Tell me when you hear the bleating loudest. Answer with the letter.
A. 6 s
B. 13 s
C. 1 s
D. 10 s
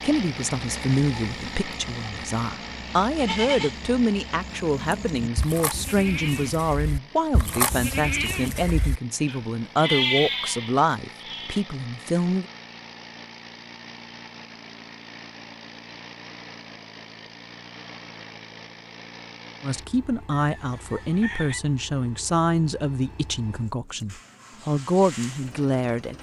D.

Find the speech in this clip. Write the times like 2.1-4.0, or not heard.
0.0-12.4, 19.6-26.1.